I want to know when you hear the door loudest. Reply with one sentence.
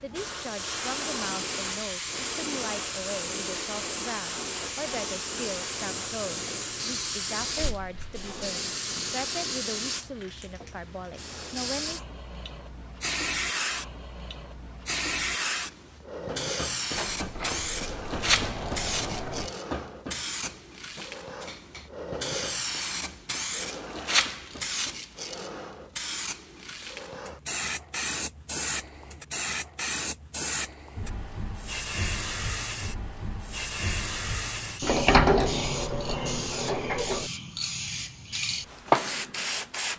The volume of the door peaks at 35 seconds.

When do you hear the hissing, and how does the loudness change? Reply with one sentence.
You can hear the hissing from 0.0 to 39.9 s, at a steady volume.